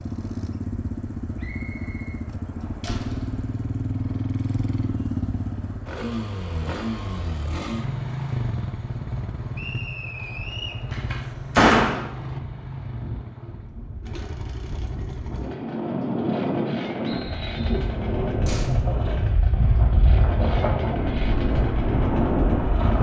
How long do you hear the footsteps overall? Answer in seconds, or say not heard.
not heard.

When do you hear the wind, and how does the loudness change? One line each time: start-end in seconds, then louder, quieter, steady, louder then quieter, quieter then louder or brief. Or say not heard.
0.0-22.9 louder.